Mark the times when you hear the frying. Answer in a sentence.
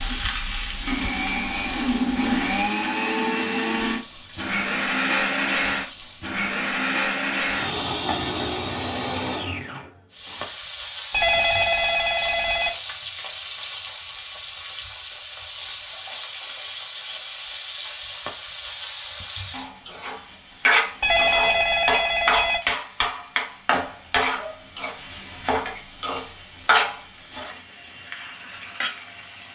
You can hear the frying from 0.0 to 6.4 s and from 10.1 to 29.5 s.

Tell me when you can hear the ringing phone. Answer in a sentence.
The ringing phone can be heard from 11.1 to 12.7 s and from 21.0 to 22.6 s.